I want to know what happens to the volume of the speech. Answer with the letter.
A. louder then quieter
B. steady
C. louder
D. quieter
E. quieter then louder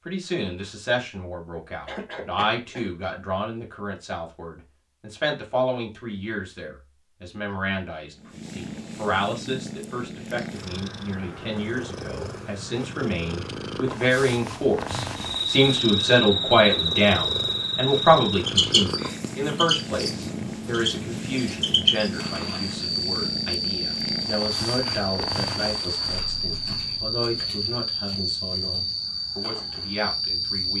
A.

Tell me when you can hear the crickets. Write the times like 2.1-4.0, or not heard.
15.2-30.7.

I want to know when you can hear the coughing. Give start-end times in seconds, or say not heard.
1.9-2.9.